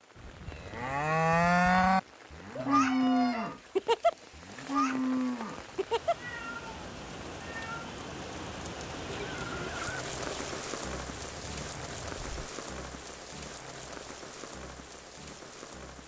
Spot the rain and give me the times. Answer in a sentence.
The rain can be heard from 0.0 to 16.0 s.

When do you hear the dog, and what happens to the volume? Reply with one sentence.
The dog can't be heard in this clip.